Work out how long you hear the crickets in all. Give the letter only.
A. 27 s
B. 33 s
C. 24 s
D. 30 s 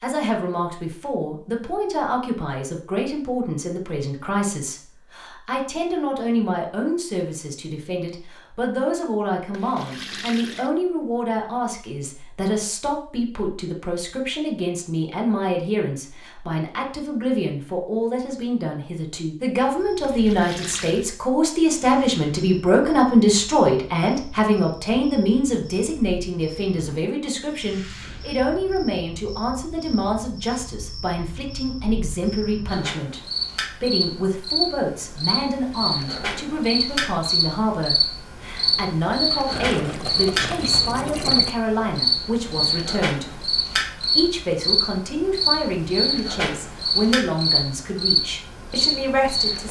D.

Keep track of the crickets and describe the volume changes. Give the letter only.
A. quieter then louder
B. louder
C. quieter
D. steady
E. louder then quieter
B.